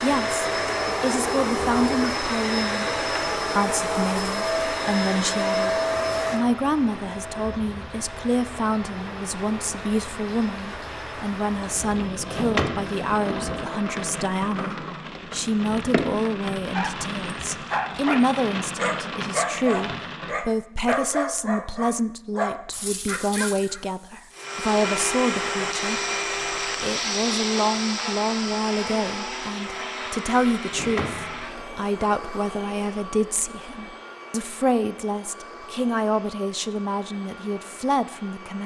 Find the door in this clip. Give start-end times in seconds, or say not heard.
12.3-13.3, 30.7-31.7.